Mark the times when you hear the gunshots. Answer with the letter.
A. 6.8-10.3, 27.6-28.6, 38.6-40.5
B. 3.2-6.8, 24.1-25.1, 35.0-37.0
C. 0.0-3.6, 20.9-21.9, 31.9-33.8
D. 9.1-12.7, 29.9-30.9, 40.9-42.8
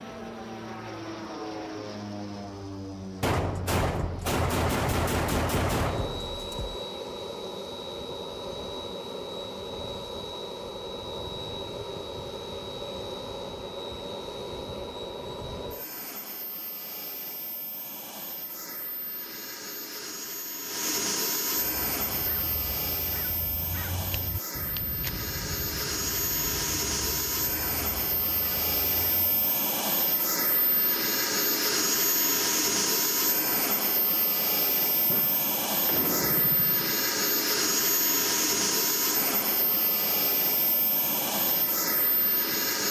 B.